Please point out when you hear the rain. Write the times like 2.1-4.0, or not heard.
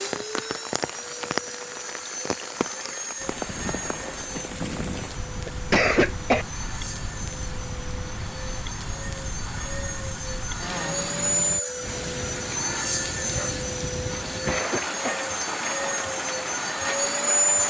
0.0-17.6.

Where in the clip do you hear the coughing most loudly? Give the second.
6 s.